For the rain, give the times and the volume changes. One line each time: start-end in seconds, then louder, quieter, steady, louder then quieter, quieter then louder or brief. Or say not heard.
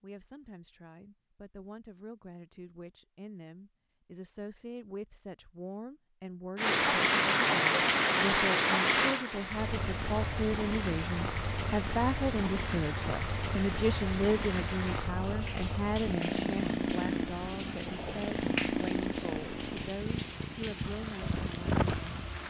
6.5-22.4 quieter.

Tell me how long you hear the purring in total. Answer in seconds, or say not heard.
13 s.